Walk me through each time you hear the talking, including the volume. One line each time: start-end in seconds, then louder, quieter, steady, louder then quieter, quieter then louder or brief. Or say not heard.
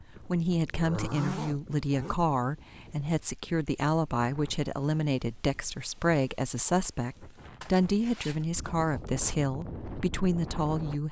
0.2-11.0 steady.